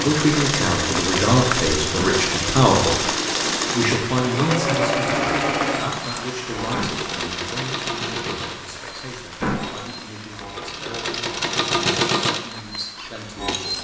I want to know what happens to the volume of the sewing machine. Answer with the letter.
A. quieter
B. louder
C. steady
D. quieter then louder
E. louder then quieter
D.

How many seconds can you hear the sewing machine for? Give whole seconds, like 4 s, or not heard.
14 s.